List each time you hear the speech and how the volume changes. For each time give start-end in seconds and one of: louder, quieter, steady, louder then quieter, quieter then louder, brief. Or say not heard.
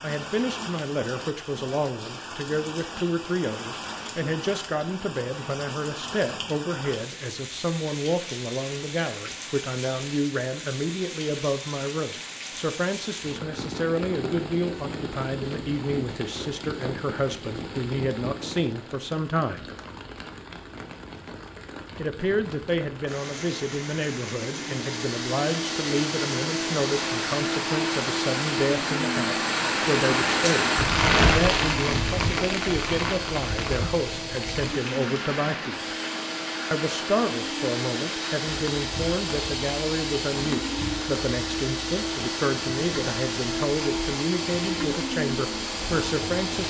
0.0-19.7 steady
21.9-36.0 steady
36.7-46.6 steady.